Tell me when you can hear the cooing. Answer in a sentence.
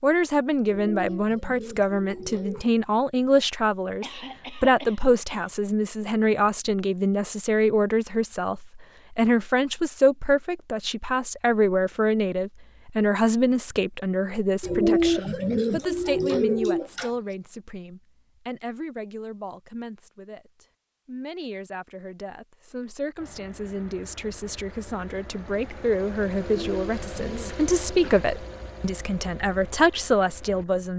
You can hear the cooing from 0.7 to 2.7 s, from 14.6 to 17.1 s and from 26.4 to 28.1 s.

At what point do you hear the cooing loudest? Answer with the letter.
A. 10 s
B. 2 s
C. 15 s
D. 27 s
C.